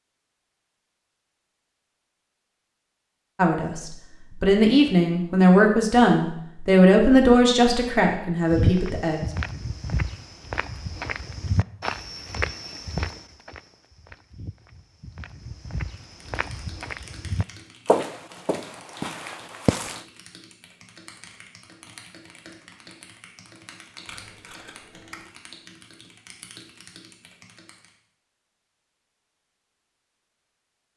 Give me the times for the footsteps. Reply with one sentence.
You can hear the footsteps from 8.5 to 20.0 s.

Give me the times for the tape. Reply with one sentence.
The tape can be heard from 24.1 to 25.2 s.